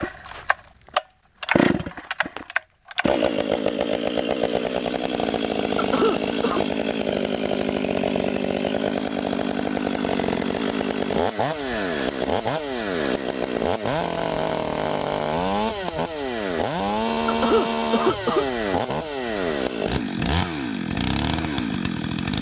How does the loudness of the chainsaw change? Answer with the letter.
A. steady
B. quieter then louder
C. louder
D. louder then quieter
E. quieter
A.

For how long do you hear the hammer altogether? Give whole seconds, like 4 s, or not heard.
not heard.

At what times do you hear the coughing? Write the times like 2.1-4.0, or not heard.
5.8-6.6, 17.2-18.4.